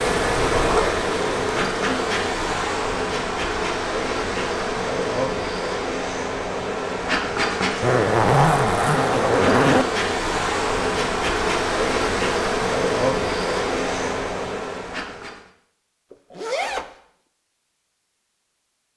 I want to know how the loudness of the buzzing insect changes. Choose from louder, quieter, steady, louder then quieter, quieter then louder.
steady.